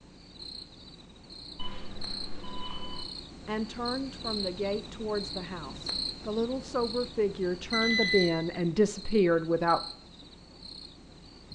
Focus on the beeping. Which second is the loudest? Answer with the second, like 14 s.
8 s.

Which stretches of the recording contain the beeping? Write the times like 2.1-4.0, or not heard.
1.6-3.0, 7.7-8.4.